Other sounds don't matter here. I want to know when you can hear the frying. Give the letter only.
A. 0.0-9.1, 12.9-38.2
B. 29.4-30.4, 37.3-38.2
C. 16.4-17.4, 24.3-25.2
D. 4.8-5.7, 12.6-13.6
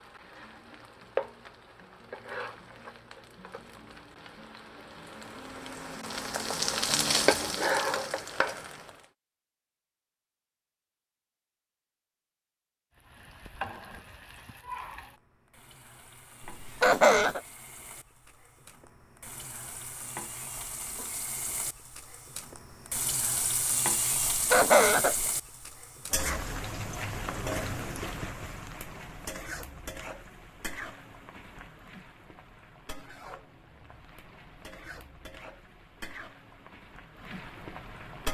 A.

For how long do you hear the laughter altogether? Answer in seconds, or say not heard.
2 s.